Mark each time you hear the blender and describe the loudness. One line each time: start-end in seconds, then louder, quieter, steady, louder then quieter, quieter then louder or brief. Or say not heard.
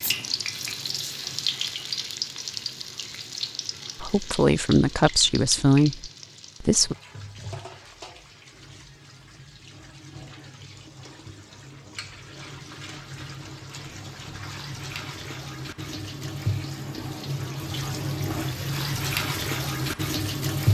not heard.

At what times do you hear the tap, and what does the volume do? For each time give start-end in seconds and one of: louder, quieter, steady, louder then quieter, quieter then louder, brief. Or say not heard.
0.0-20.6 quieter then louder.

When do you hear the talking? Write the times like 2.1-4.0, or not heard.
4.0-7.0.